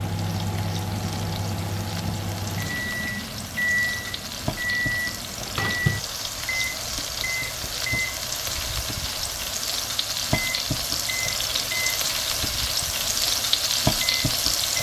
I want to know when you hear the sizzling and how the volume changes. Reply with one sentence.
The sizzling can be heard from 0.0 to 14.7 s, getting louder.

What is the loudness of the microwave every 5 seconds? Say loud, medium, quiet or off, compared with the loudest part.
loud, loud, medium.